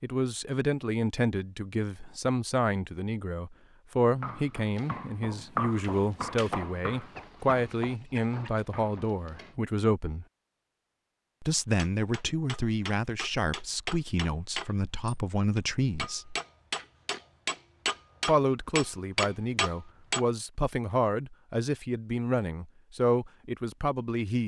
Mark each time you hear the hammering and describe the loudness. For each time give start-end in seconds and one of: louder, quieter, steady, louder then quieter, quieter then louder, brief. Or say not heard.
11.8-20.2 louder.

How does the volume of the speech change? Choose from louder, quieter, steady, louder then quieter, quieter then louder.
steady.